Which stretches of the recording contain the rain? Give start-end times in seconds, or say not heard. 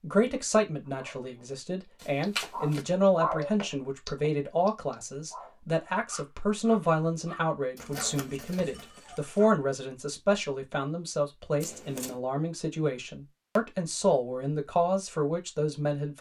not heard.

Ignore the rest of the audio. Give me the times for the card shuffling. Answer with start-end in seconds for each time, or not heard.
2.0-2.9, 7.8-8.9, 11.6-12.2.